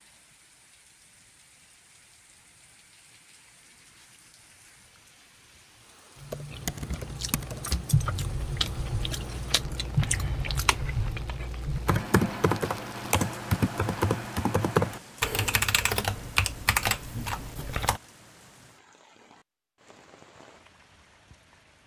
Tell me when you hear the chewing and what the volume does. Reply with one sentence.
You can hear the chewing from 6.5 to 12.0 s, at a steady volume.